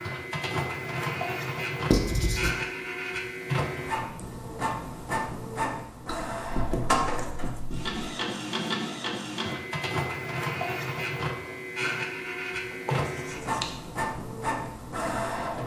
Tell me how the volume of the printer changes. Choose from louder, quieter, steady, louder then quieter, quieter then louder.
steady.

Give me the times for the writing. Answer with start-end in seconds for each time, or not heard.
1.9-2.5, 6.0-8.0, 12.7-13.9.